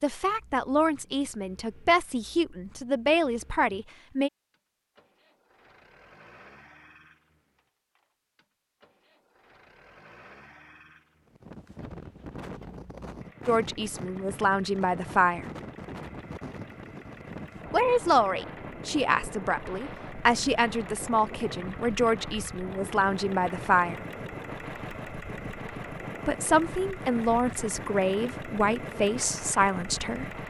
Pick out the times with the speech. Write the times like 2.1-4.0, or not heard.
0.0-4.3, 13.4-15.4, 17.7-23.9, 26.2-30.4.